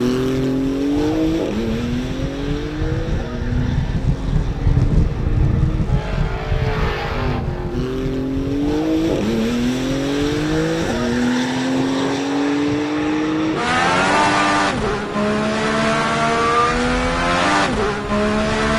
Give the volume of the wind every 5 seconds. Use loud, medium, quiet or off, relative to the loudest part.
loud, loud, medium, medium.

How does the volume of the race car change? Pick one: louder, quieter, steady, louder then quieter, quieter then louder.
quieter then louder.